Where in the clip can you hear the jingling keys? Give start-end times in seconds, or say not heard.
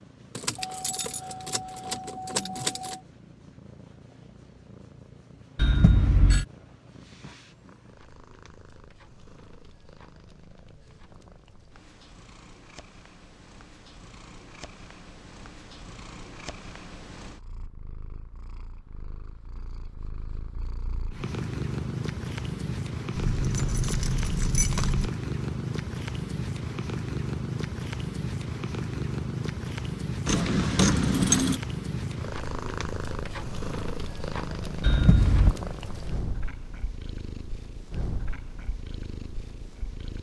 0.3-3.0, 23.1-25.1, 30.2-31.6.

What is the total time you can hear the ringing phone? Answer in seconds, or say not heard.
2 s.